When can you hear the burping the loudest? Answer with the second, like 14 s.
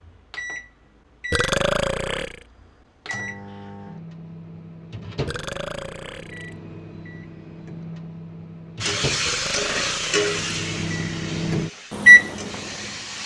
2 s.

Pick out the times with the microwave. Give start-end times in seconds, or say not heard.
0.0-13.2.